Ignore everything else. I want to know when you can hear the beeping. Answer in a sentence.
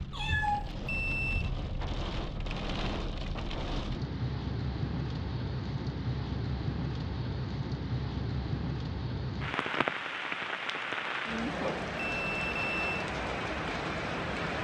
The beeping can be heard from 0.8 to 1.5 s and from 11.9 to 13.1 s.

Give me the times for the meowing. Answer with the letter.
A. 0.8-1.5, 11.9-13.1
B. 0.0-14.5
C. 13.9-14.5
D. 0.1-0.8
D.